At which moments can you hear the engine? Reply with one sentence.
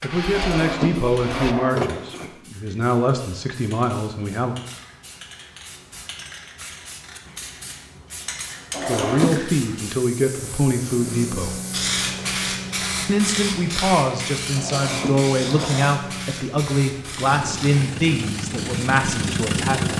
You can hear the engine from 0.0 to 1.6 s and from 10.3 to 19.9 s.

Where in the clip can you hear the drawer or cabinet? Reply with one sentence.
The drawer or cabinet can be heard from 0.3 to 2.3 s, from 8.7 to 9.4 s and from 14.6 to 15.9 s.